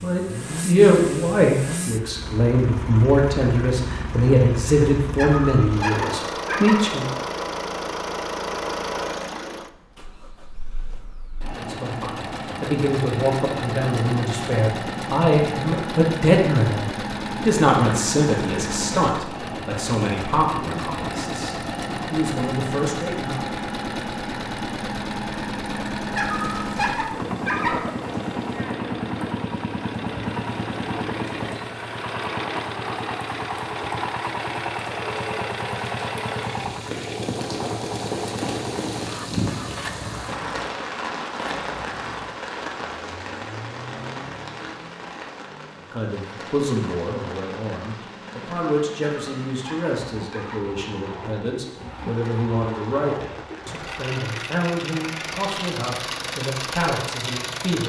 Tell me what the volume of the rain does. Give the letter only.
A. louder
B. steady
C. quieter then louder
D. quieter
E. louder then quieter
E.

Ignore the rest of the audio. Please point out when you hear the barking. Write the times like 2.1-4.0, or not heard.
5.2-6.8, 26.1-27.8, 49.0-50.6.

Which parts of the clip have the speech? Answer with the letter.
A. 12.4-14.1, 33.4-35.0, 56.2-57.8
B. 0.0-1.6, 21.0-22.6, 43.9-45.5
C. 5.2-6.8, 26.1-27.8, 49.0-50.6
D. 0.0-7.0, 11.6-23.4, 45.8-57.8
D.